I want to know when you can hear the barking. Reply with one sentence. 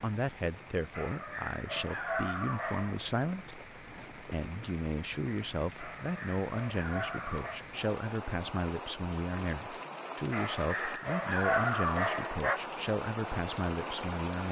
You can hear the barking from 0.9 to 3.1 s, from 5.8 to 7.7 s and from 10.3 to 12.6 s.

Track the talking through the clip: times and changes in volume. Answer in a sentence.
The talking can be heard from 0.0 to 14.4 s, at a steady volume.